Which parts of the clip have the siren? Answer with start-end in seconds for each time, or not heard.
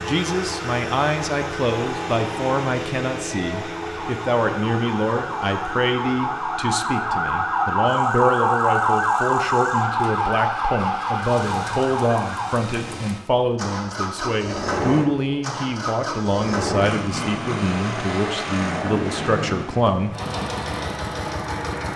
0.0-12.6.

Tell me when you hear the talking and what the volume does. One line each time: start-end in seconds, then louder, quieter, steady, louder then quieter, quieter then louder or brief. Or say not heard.
0.0-20.1 steady.